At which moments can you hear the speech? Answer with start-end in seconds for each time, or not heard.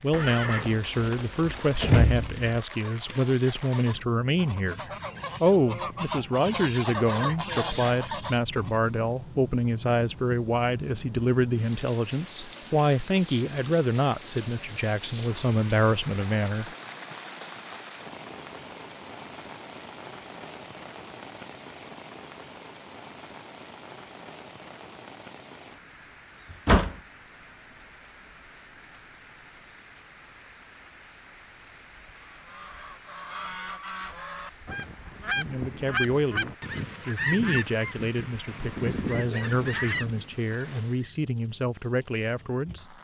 0.0-16.7, 35.4-42.9.